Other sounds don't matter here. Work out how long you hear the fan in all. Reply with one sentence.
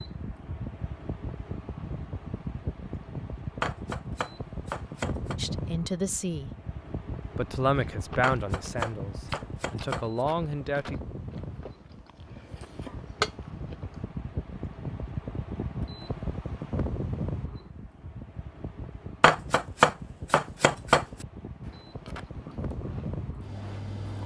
The fan can be heard for 24 seconds in total.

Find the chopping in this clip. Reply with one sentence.
You can hear the chopping from 3.6 to 5.3 s, from 8.2 to 10.1 s and from 19.2 to 21.2 s.